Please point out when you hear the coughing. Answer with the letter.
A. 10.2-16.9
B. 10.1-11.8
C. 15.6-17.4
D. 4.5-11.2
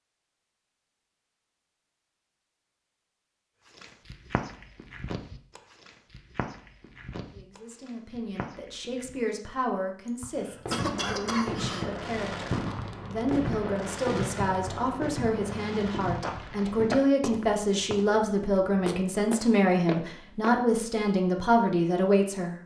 B.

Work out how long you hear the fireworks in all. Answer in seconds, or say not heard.
7 s.